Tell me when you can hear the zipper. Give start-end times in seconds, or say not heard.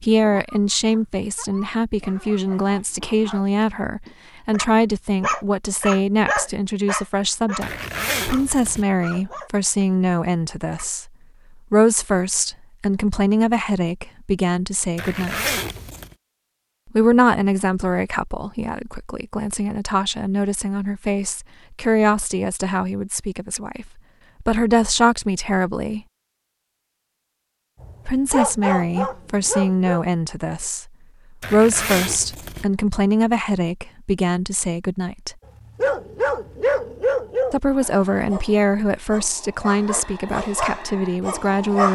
7.6-8.8, 14.9-16.1, 31.4-32.6.